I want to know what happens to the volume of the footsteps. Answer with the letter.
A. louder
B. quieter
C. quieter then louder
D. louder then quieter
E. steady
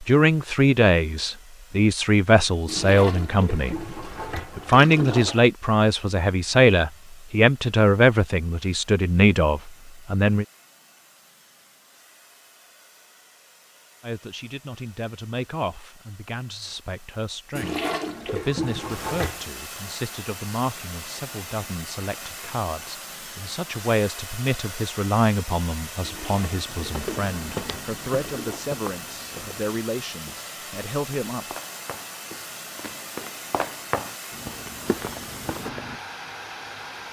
C.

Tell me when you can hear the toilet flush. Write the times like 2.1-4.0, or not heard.
2.6-5.5, 17.6-19.4, 26.0-28.6.